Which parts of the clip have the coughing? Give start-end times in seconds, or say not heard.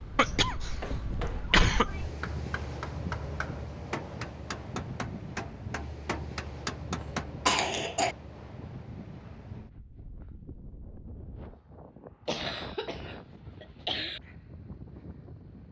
0.1-2.1, 7.5-8.2, 12.2-14.2.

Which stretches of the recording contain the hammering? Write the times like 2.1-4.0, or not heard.
0.8-7.3.